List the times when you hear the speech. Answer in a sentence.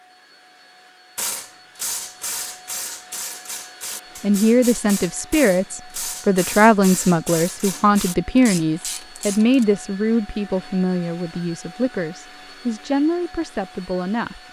The speech can be heard from 4.2 to 14.4 s.